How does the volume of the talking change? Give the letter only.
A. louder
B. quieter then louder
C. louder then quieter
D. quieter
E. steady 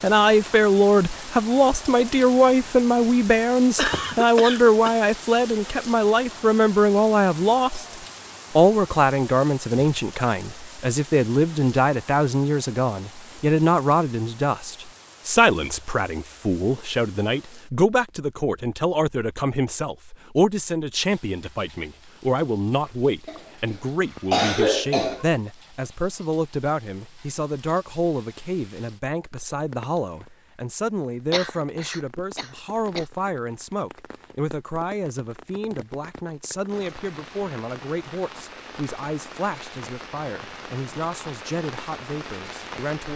D.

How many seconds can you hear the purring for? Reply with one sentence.
The purring can't be heard in this clip.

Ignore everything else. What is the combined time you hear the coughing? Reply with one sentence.
You can hear the coughing for 5 seconds altogether.